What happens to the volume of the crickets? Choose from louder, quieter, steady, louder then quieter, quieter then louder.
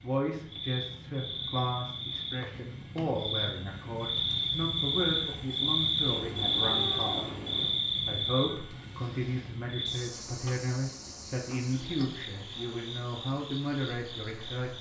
louder then quieter.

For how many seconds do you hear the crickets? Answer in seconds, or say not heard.
15 s.